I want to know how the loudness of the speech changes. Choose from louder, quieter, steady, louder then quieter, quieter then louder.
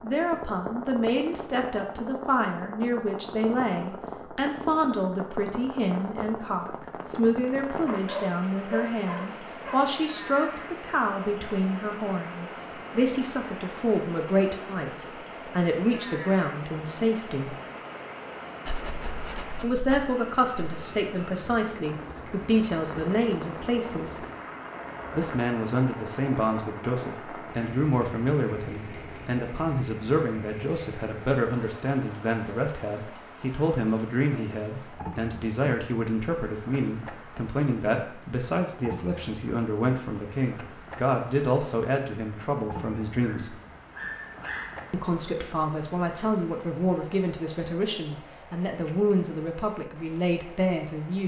steady.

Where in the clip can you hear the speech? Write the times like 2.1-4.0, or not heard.
0.0-17.6, 19.6-24.2, 25.1-43.6, 44.9-51.2.